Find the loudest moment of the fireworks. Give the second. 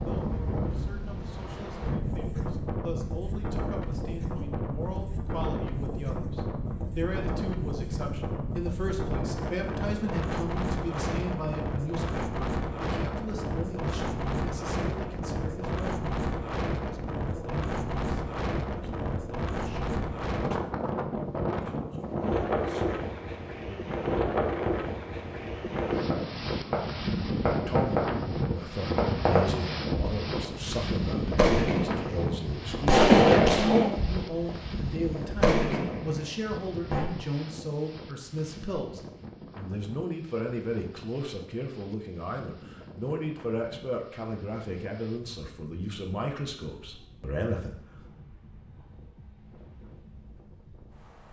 33 s.